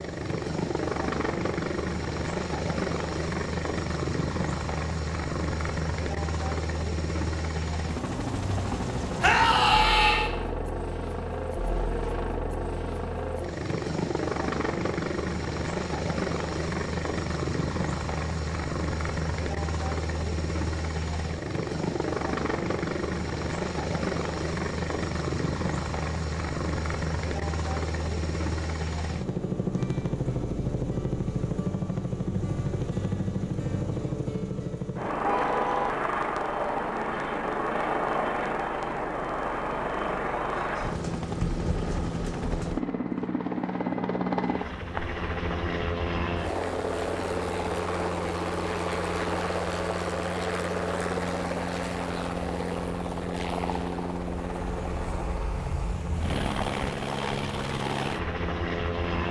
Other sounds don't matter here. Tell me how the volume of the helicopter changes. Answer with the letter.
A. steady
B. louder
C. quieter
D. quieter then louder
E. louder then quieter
A.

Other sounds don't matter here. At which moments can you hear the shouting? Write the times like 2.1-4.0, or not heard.
9.2-10.3.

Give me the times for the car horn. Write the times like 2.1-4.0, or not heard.
35.2-36.0.